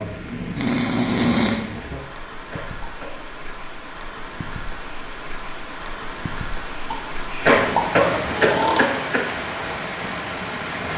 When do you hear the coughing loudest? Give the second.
8 s.